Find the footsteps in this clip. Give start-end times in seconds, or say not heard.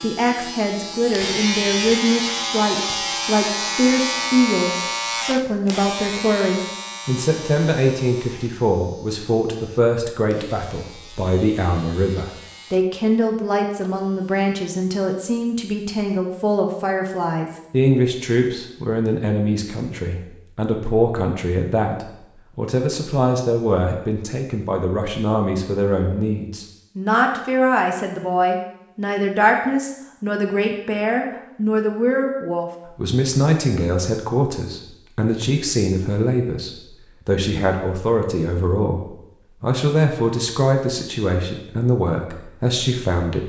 not heard.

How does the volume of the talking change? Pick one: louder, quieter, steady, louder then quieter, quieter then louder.
steady.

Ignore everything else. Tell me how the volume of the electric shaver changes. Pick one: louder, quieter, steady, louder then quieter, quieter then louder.
quieter.